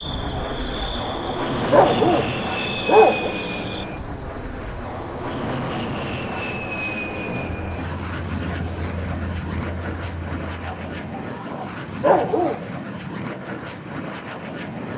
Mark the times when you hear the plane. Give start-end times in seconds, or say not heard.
0.0-14.9.